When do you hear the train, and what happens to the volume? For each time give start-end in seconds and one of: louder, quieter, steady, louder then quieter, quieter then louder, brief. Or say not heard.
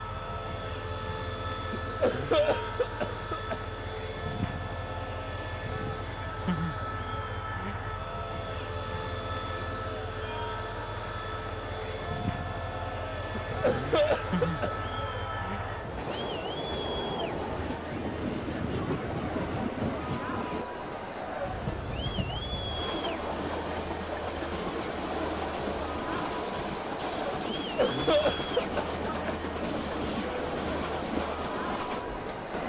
0.0-32.6 steady.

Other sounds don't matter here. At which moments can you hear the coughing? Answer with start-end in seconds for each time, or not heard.
1.7-3.6, 13.3-14.8, 27.4-29.4.